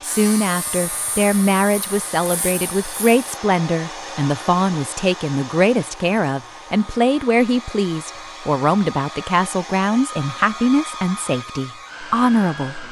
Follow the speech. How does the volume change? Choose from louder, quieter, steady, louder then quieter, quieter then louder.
steady.